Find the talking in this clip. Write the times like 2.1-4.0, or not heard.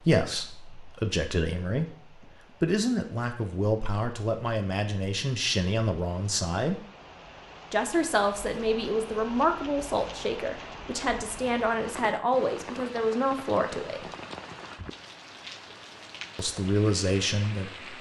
0.0-6.8, 7.7-14.1, 16.4-17.9.